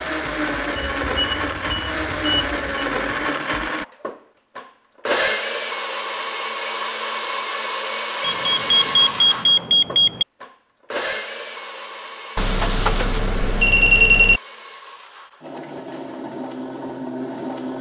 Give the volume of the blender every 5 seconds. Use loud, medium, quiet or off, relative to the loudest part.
loud, loud, medium, medium.